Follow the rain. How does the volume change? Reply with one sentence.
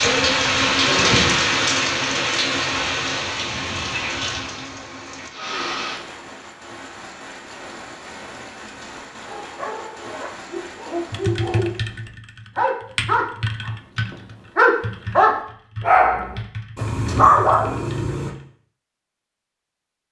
The volume of the rain goes down.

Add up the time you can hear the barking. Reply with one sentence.
You can hear the barking for 9 seconds altogether.